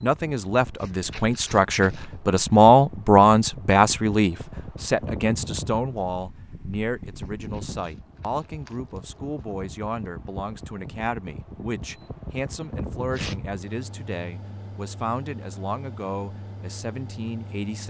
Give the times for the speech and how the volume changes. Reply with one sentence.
The speech can be heard from 0.0 to 17.8 s, getting quieter.